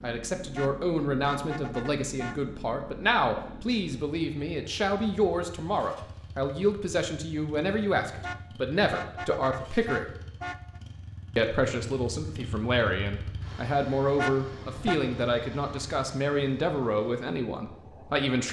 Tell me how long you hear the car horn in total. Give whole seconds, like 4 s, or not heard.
5 s.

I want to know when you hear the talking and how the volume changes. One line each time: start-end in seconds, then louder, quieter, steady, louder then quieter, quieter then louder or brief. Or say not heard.
0.0-10.2 steady
11.3-18.4 steady.